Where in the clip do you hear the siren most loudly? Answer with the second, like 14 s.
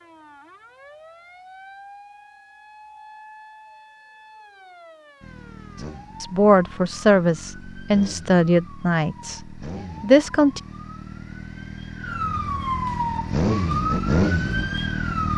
13 s.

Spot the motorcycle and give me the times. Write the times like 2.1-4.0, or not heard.
5.2-15.3.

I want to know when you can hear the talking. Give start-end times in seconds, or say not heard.
6.2-10.6.